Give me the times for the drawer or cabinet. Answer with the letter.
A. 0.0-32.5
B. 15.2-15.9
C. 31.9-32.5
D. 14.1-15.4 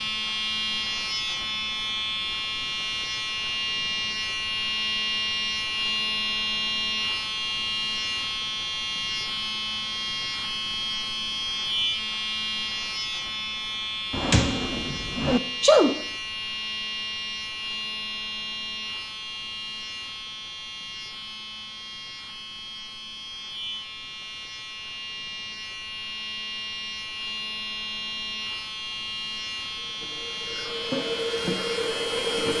D.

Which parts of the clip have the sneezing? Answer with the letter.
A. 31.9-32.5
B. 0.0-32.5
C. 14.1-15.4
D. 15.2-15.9
D.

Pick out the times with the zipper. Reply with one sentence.
You can't hear the zipper here.